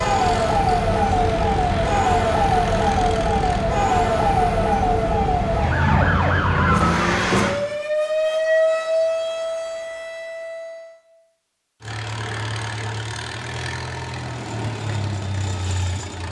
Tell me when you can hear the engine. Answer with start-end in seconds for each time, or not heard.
0.0-3.6, 11.8-16.2.